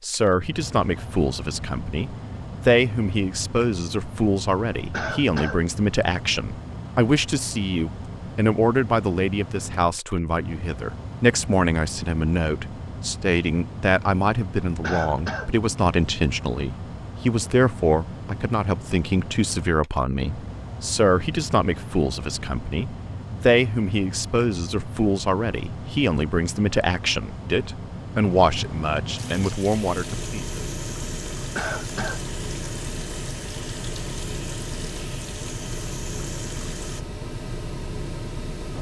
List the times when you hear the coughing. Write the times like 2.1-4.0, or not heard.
4.9-5.6, 14.8-15.5, 31.6-32.2.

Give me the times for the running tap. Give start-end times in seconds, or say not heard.
29.1-37.0.